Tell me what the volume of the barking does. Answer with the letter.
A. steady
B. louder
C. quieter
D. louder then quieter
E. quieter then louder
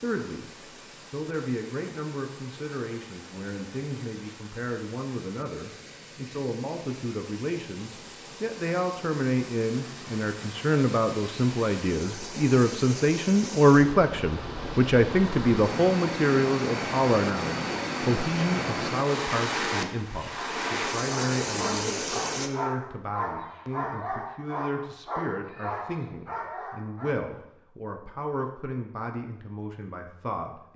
A.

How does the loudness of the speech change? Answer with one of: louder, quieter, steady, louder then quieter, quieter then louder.
louder then quieter.